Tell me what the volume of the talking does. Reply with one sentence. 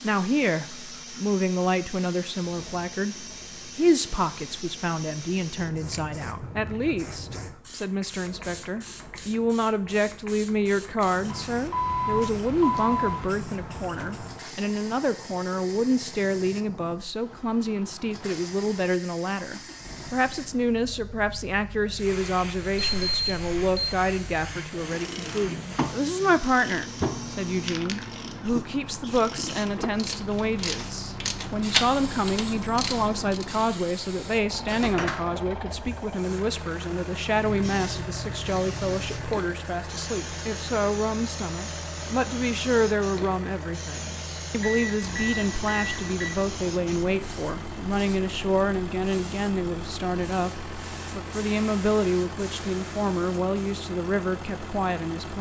The loudness of the talking stays about the same.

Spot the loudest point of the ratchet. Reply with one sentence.
The volume of the ratchet peaks at 32 seconds.